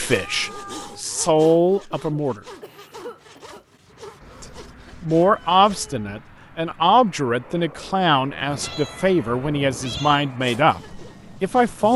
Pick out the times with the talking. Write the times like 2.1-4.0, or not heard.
0.0-2.4, 4.4-11.9.